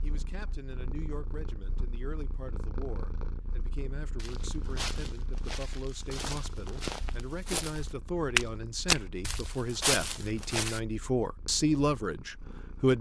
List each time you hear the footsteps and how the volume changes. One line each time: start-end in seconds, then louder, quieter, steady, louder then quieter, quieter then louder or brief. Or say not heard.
4.2-10.8 louder then quieter.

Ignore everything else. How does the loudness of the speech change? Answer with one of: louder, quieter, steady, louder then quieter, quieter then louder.
louder.